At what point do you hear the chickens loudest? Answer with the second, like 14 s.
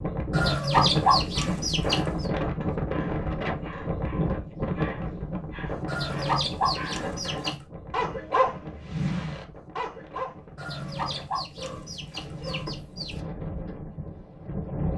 1 s.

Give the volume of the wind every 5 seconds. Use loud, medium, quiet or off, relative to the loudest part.
loud, medium, medium.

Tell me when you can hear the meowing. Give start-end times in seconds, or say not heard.
not heard.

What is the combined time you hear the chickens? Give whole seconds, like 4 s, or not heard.
6 s.